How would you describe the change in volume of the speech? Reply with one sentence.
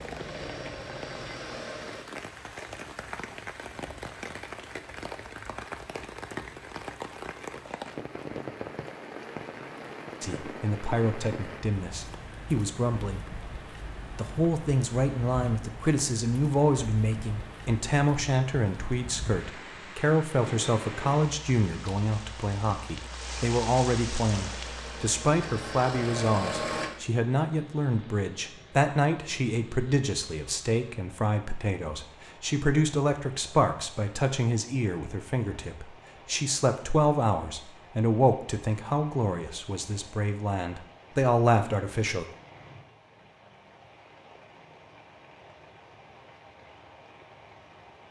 The volume of the speech stays about the same.